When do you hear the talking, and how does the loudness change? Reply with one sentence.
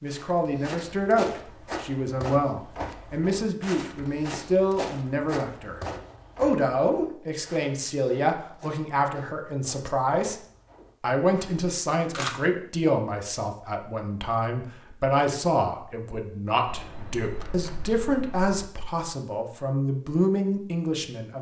The talking can be heard from 0.0 to 10.4 s, at a steady volume; and from 11.0 to 21.3 s, at a steady volume.